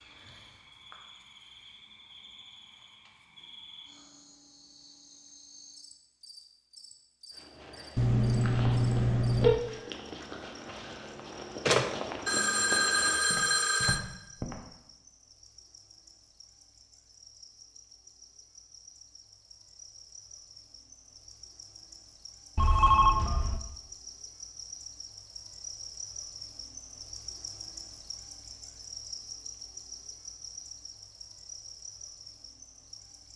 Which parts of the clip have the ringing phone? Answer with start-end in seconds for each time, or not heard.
8.0-9.6, 11.7-14.0, 22.6-23.6.